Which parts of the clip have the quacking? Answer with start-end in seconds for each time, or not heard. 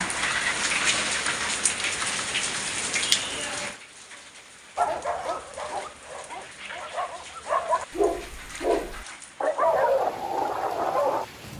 not heard.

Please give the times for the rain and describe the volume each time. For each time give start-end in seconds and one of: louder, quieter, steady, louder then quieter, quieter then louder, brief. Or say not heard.
0.0-11.5 quieter.